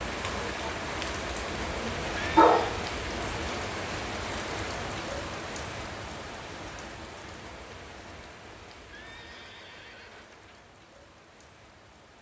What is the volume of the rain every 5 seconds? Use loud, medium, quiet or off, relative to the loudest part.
loud, medium, quiet.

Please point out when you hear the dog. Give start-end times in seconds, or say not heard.
1.8-2.9.